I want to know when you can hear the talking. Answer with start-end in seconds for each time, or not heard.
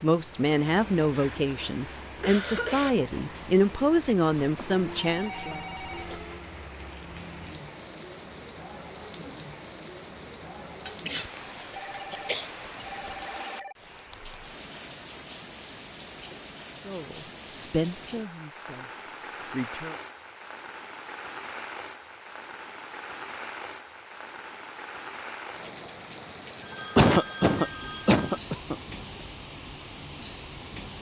0.0-5.6, 16.8-19.9.